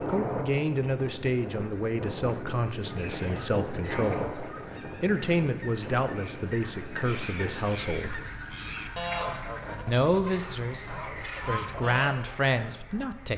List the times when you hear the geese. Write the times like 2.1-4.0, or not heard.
3.0-12.3.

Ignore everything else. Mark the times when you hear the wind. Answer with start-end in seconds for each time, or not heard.
0.0-13.3.